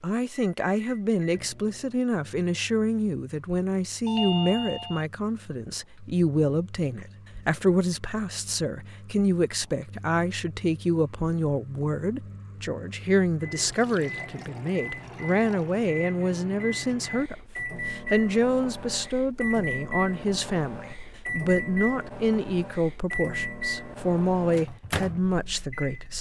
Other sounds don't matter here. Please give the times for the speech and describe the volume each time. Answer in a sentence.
The speech can be heard from 0.0 to 26.1 s, at a steady volume.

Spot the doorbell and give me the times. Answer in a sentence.
You can hear the doorbell from 4.0 to 5.0 s.